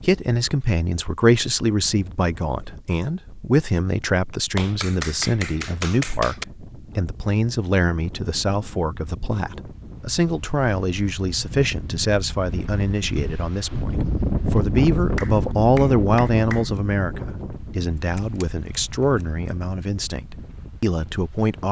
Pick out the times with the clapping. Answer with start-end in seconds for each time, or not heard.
4.5-6.5, 15.2-16.7.